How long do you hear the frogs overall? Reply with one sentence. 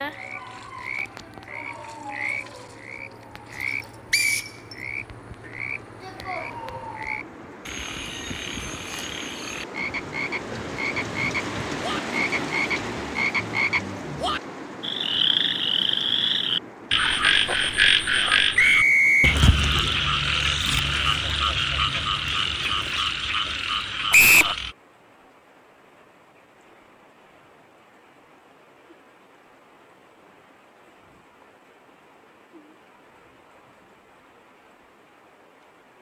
The frogs can be heard for 25 seconds in total.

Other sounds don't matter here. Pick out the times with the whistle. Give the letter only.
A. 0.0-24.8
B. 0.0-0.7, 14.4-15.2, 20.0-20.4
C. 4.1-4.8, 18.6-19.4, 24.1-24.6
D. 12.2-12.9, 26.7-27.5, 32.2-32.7
C.